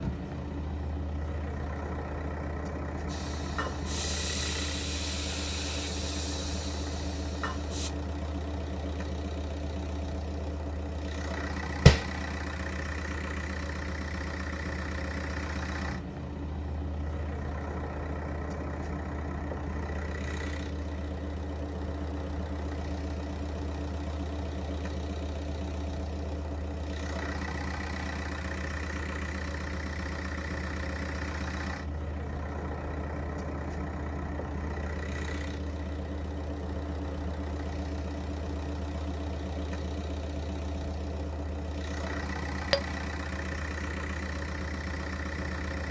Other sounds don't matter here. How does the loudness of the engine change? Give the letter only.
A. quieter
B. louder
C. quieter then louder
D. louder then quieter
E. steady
E.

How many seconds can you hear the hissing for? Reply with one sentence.
The hissing can be heard for 5 seconds in total.